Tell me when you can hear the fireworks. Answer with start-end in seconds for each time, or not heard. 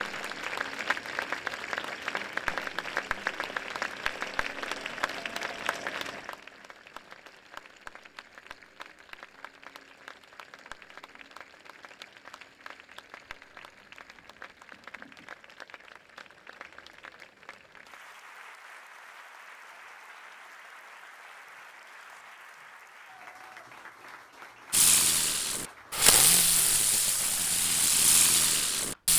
24.7-29.1.